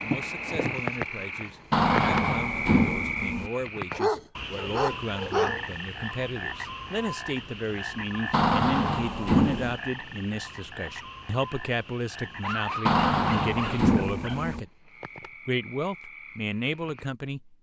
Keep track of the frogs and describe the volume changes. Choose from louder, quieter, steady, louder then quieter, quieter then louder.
quieter.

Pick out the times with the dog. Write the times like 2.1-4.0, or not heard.
3.9-5.7, 12.2-14.6.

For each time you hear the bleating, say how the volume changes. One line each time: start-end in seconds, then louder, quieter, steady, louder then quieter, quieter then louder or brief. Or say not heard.
not heard.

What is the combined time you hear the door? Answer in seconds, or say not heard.
5 s.